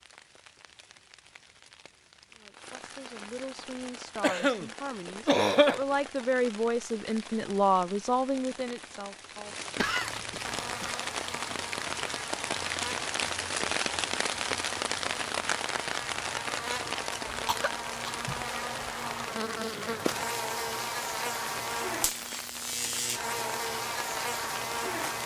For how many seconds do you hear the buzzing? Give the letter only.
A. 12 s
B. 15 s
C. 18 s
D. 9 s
B.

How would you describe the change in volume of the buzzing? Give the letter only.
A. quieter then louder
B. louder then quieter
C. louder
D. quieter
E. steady
C.